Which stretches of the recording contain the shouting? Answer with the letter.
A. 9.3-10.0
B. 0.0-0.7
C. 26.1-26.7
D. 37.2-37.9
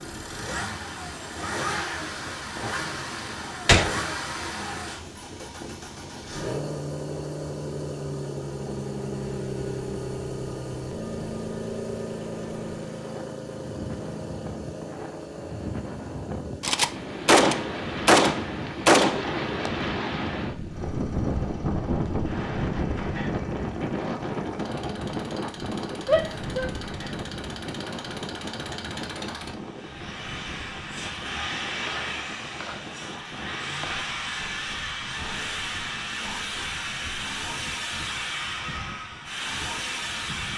C.